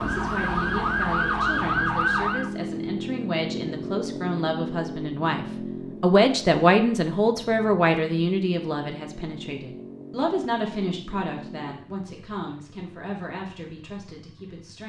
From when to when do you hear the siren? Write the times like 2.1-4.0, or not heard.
0.0-2.5.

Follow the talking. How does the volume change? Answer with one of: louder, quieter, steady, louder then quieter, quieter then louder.
louder then quieter.